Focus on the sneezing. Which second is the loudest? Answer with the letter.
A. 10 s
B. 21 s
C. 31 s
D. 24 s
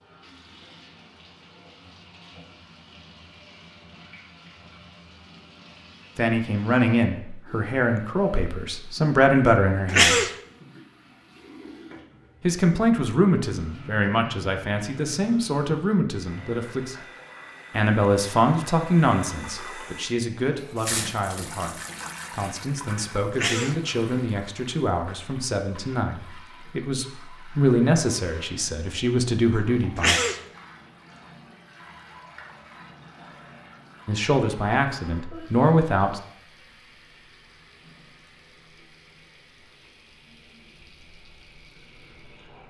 A.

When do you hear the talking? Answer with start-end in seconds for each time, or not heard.
6.2-10.2, 12.4-16.9, 17.7-30.2, 34.0-36.2.